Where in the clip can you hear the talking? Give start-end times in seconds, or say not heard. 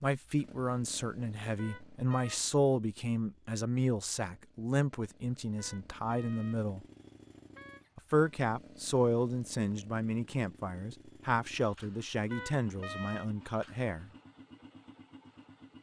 0.0-6.8, 8.0-14.1.